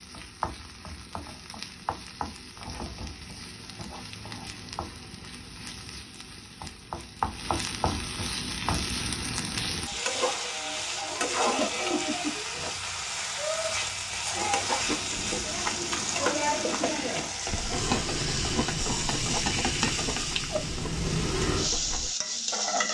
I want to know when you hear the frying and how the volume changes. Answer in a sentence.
You can hear the frying from 0.0 to 22.8 s, getting louder.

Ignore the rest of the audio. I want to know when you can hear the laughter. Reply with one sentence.
You can hear the laughter from 11.4 to 12.3 s.